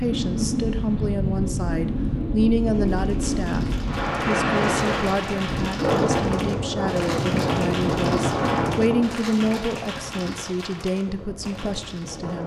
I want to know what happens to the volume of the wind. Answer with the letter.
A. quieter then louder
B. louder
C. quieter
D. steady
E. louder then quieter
C.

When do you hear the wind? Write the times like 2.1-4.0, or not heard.
0.0-12.4.